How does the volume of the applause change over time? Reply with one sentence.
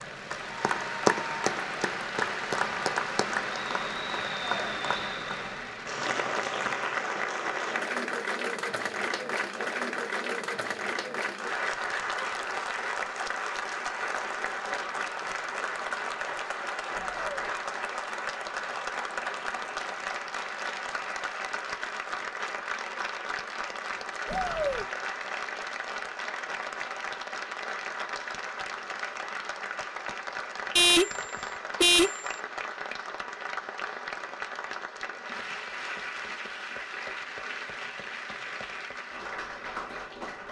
The loudness of the applause goes down.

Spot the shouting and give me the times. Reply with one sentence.
You can hear the shouting from 16.9 to 17.5 s and from 24.2 to 24.9 s.